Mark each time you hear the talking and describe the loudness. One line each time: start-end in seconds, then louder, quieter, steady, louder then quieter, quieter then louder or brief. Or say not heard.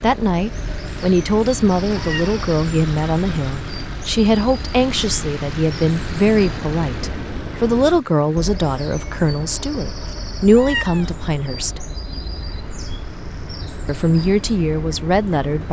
0.0-11.8 steady
13.8-15.6 brief.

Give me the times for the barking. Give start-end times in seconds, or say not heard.
not heard.